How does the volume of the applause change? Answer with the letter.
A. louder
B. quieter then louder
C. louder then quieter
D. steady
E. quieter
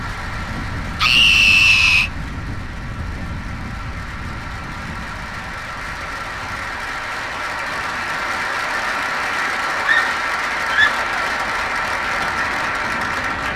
A.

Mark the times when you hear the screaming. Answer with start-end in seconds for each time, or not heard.
1.0-2.1, 9.8-11.1.